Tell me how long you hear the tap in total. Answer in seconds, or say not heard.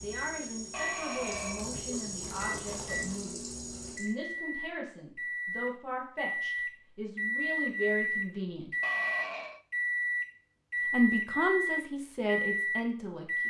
4 s.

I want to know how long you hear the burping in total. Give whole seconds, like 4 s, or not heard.
2 s.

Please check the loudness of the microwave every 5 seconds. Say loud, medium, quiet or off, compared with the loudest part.
medium, loud, loud.